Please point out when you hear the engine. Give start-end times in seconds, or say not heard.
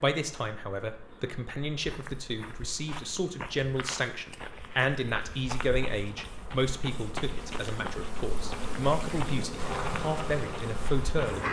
9.6-11.3.